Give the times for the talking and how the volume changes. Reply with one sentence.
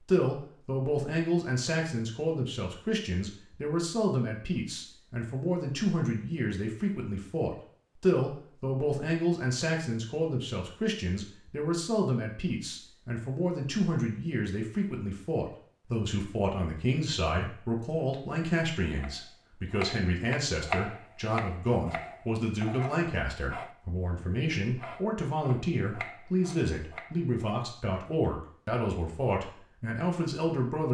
You can hear the talking from 0.0 to 30.8 s, at a steady volume.